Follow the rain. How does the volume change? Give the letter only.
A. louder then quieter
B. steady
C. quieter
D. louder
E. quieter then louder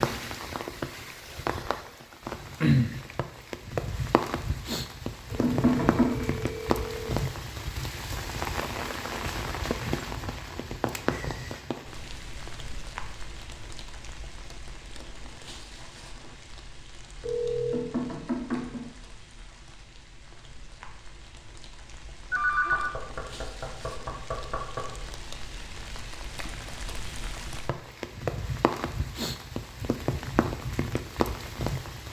E.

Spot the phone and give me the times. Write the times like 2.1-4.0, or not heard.
5.3-7.2, 17.2-17.9, 22.3-22.9.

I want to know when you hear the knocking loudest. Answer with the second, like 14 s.
6 s.